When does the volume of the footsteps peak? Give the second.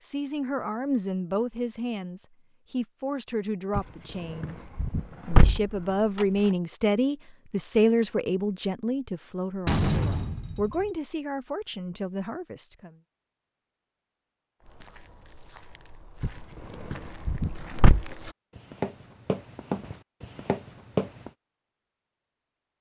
21 s.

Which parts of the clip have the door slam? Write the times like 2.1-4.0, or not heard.
9.7-10.9.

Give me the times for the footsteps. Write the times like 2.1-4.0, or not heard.
14.6-21.3.